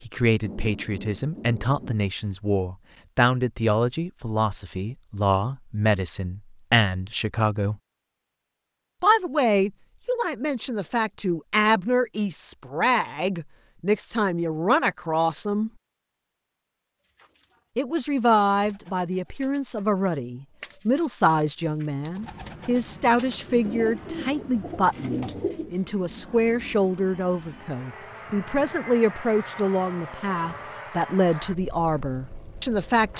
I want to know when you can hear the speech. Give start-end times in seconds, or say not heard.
0.1-7.8, 9.0-15.7, 17.8-33.1.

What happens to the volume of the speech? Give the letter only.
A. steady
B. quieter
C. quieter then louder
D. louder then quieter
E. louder
A.